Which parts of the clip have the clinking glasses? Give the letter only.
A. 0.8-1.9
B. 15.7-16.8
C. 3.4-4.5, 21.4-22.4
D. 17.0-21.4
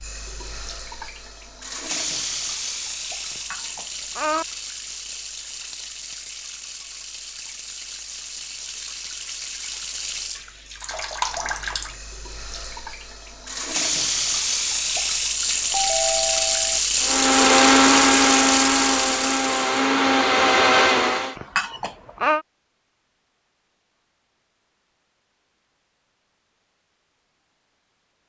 C.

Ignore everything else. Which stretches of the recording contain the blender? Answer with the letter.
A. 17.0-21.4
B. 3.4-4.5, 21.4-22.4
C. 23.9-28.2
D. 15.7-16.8
A.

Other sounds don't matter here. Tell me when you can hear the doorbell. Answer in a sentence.
You can hear the doorbell from 15.7 to 16.8 s.